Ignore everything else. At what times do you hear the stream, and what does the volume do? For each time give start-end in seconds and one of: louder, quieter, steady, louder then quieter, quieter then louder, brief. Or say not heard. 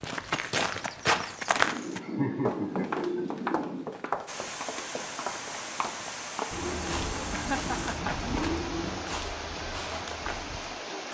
4.2-11.0 steady.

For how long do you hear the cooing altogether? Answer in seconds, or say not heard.
5 s.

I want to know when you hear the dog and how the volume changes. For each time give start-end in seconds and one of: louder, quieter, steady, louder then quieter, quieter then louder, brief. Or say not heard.
not heard.